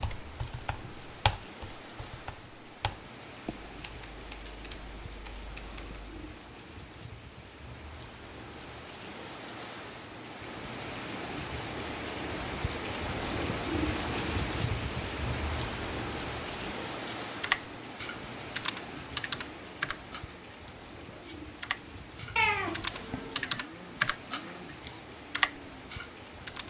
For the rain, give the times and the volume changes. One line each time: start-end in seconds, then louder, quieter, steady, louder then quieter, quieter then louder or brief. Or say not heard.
0.0-26.6 louder then quieter.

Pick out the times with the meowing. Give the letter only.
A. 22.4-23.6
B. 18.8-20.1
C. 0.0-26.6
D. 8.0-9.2
A.